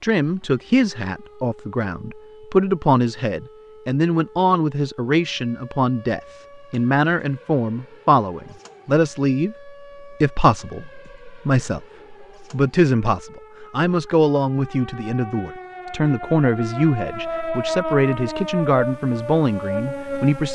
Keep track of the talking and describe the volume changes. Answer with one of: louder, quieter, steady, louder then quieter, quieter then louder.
steady.